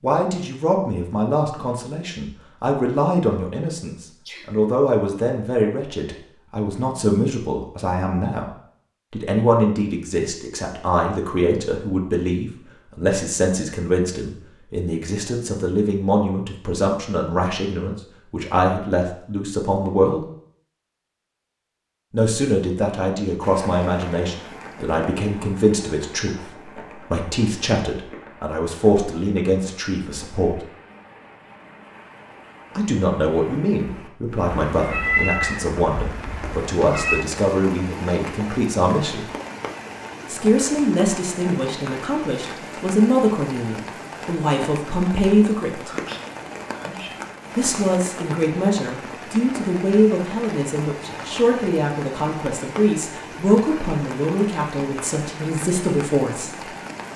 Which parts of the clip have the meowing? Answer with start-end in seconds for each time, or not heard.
34.5-37.2.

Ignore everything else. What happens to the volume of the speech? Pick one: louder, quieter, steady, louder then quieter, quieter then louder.
steady.